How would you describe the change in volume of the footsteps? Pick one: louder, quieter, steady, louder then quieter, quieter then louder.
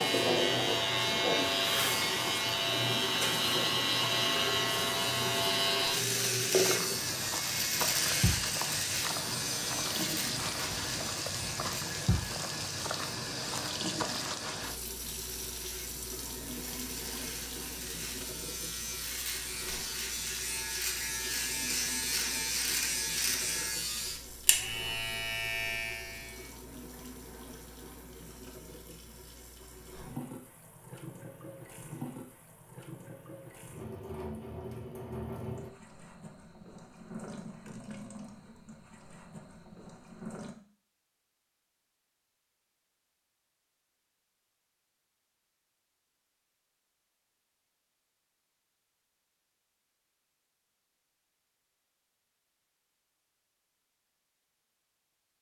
steady.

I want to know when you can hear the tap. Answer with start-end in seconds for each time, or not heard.
0.0-40.5.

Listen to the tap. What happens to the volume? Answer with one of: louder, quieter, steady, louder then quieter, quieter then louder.
quieter.